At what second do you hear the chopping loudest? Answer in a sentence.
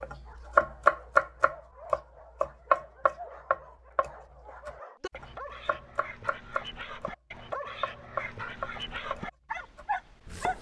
The loudest moment of the chopping is at 1 second.